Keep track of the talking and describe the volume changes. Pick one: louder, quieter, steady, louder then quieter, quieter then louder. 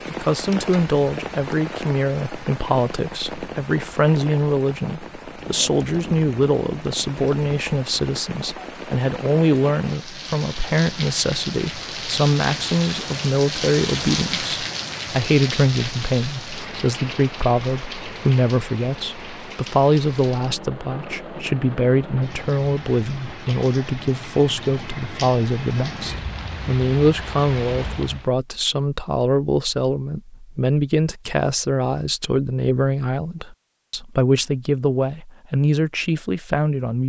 steady.